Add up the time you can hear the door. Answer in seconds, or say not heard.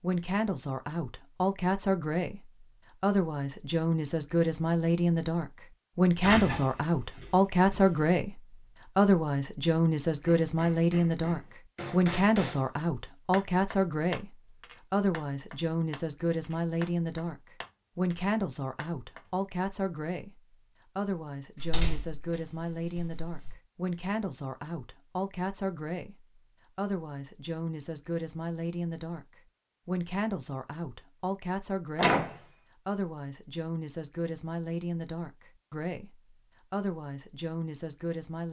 4 s.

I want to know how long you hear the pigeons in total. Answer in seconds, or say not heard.
not heard.